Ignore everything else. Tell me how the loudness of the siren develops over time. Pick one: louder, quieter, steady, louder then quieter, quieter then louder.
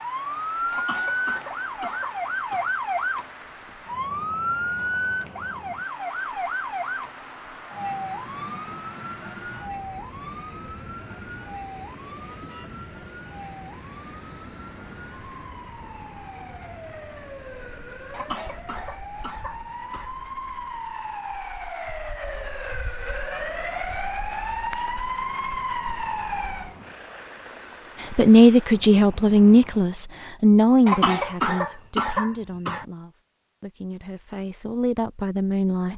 quieter then louder.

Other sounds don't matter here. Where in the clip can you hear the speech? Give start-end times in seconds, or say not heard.
28.0-35.9.